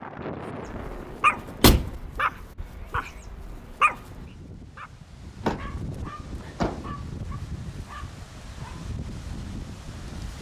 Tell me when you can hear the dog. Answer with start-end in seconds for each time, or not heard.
0.7-8.8.